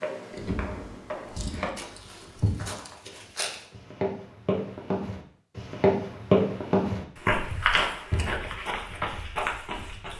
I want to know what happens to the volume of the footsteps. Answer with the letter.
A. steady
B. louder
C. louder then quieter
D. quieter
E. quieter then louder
C.